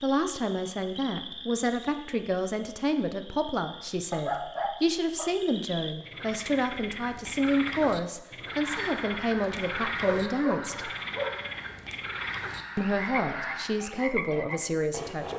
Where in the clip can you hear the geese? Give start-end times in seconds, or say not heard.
8.4-13.8.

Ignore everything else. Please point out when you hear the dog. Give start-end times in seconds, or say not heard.
4.1-5.3, 10.0-11.8.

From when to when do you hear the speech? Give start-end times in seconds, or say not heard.
0.0-10.9, 12.8-15.3.